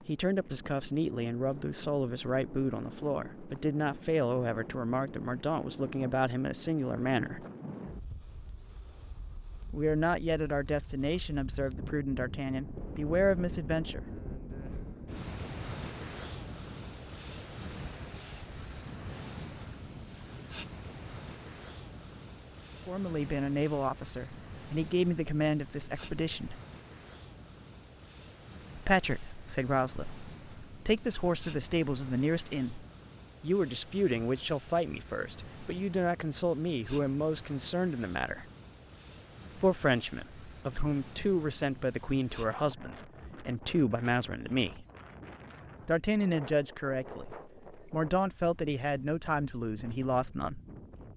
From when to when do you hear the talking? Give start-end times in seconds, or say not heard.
0.1-7.5, 9.7-14.0, 22.9-26.6, 28.8-38.5, 39.5-44.9, 45.9-50.6.